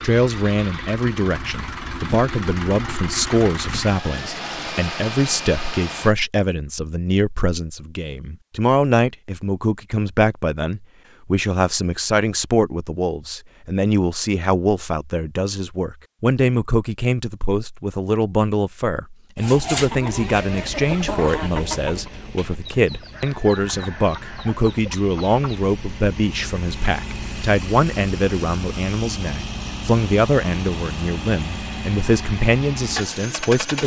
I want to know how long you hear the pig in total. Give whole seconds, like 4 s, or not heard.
not heard.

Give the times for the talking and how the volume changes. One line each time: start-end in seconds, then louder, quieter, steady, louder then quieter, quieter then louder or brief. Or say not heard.
0.0-33.8 steady.